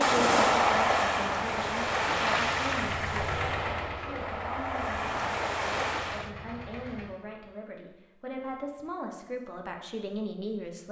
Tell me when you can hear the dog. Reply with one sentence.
The dog can't be heard in this clip.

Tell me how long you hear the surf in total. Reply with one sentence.
The surf can be heard for 6 seconds in total.